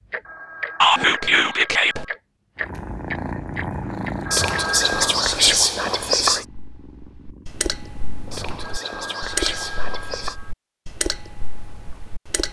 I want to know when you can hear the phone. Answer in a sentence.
The phone can be heard from 0.2 to 2.2 s, from 4.2 to 5.2 s and from 8.6 to 10.6 s.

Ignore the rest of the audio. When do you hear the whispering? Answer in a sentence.
The whispering can be heard from 0.8 to 2.0 s, from 4.3 to 6.5 s and from 8.3 to 10.3 s.